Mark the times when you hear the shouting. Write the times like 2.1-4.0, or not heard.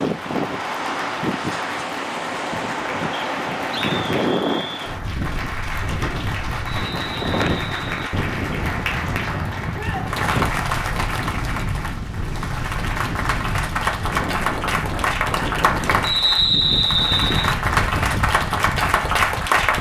9.7-10.1.